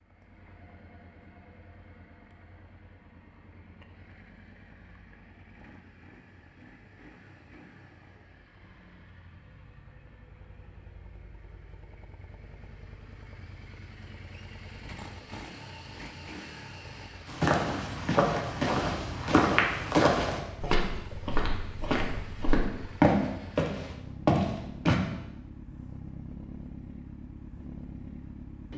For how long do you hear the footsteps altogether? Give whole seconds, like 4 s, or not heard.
8 s.